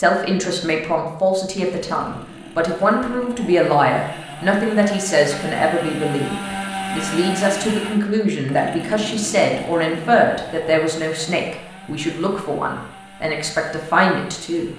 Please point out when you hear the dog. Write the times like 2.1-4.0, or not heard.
not heard.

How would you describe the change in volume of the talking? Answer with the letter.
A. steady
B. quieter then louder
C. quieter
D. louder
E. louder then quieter
A.